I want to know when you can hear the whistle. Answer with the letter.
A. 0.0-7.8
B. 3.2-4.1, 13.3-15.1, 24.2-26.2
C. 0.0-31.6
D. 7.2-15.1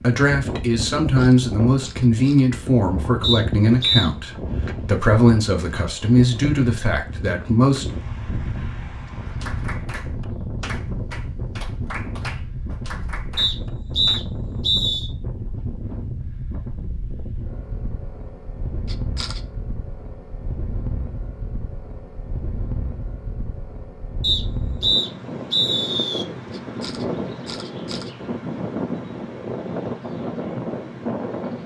B.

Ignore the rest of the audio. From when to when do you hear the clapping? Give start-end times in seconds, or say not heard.
9.2-14.2.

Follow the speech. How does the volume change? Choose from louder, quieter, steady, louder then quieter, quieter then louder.
steady.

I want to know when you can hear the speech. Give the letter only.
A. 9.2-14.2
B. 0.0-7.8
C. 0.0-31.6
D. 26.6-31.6
B.